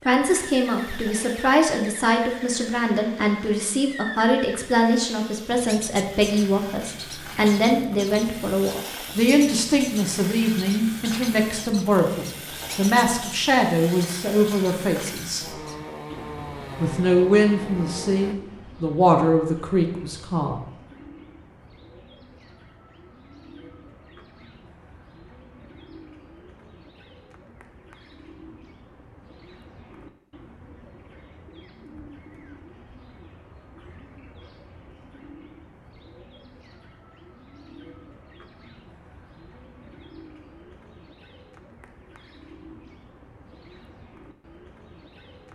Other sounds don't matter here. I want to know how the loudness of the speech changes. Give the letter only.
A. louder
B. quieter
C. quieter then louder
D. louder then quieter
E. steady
E.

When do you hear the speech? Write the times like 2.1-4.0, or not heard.
0.1-15.6, 16.8-20.6.